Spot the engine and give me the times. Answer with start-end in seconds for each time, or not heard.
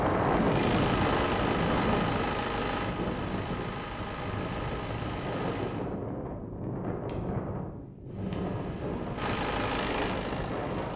0.0-5.8, 8.1-10.9.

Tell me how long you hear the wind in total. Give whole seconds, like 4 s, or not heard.
11 s.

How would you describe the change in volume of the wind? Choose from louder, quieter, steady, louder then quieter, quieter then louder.
quieter.